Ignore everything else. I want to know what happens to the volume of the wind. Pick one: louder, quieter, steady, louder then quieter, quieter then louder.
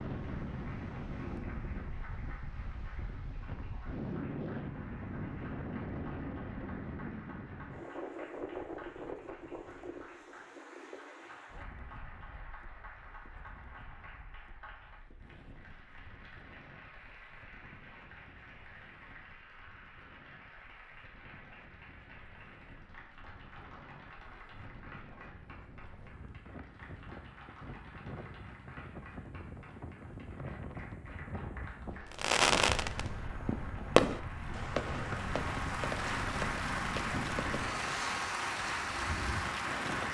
quieter then louder.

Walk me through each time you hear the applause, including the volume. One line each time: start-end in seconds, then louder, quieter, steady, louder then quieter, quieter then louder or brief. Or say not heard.
0.0-40.0 louder.